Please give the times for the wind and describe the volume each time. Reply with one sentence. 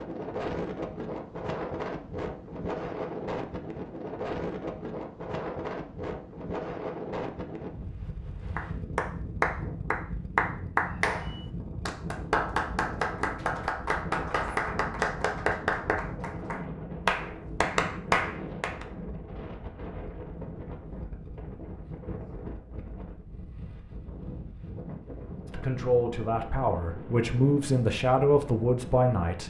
The wind can be heard from 0.0 to 29.4 s, getting quieter.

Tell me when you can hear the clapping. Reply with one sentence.
You can hear the clapping from 8.6 to 18.9 s.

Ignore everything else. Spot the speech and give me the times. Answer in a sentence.
You can hear the speech from 25.4 to 29.4 s.